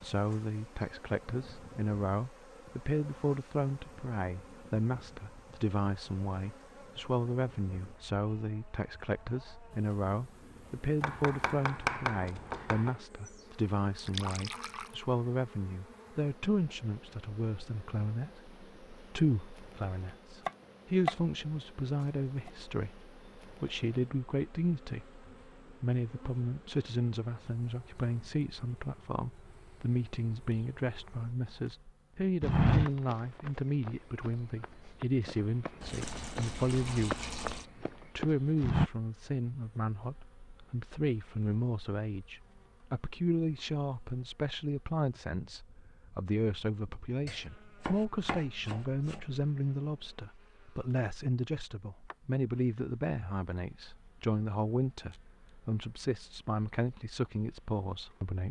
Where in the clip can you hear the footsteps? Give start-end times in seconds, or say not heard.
32.4-38.9.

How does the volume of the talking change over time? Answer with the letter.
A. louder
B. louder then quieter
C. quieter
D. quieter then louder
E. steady
E.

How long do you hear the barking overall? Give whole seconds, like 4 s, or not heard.
not heard.